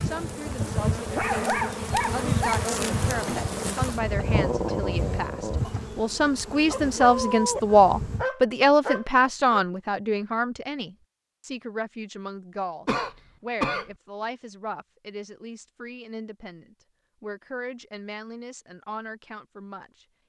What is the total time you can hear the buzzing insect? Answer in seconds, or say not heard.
8 s.